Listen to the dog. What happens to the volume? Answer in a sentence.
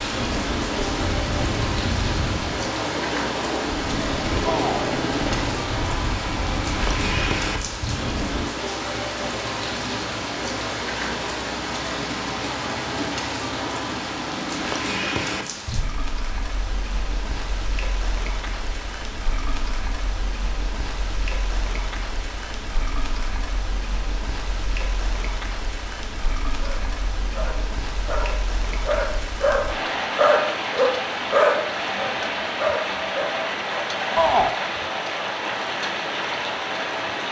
The volume of the dog goes up, then down.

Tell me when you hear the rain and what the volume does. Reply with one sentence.
You can hear the rain from 0.0 to 37.2 s, getting quieter then louder.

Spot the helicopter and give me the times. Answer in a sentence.
The helicopter can be heard from 0.0 to 8.5 s.